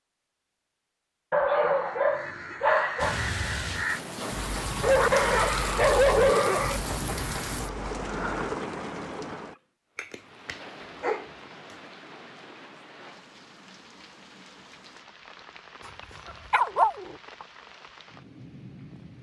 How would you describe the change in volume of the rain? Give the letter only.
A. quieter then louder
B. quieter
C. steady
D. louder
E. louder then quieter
B.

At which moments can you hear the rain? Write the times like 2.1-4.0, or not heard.
3.0-19.1.